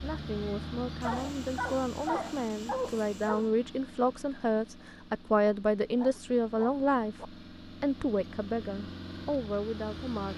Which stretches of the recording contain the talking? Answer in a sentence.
You can hear the talking from 0.0 to 10.3 s.